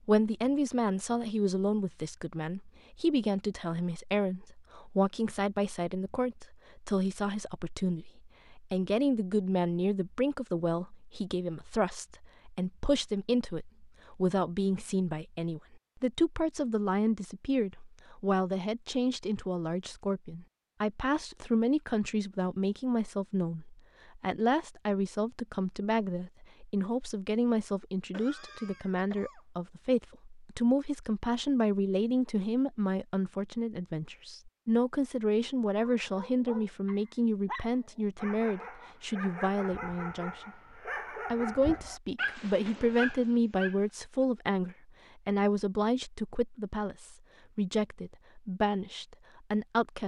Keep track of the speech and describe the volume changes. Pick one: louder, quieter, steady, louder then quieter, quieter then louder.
steady.